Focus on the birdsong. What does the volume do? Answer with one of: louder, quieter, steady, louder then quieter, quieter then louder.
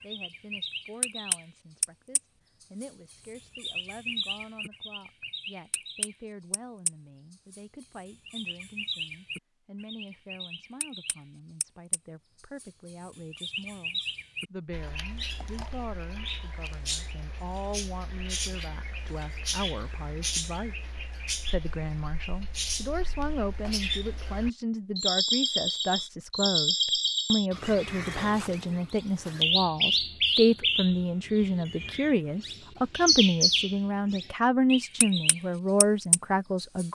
louder.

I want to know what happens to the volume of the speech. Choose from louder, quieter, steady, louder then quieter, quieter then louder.
louder.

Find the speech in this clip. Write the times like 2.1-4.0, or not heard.
0.0-36.8.